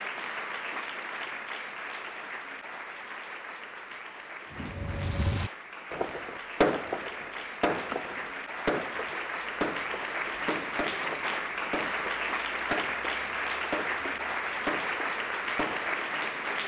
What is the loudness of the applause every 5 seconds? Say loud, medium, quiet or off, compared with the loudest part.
medium, medium, loud, loud.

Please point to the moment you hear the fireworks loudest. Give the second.
7 s.